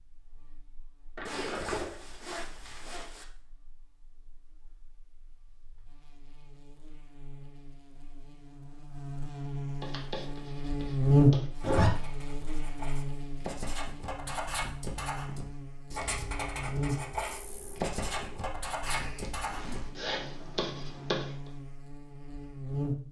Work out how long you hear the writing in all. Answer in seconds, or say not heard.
12 s.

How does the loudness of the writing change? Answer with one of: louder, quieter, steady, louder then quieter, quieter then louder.
louder.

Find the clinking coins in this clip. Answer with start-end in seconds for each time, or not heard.
1.1-2.0, 15.9-18.4.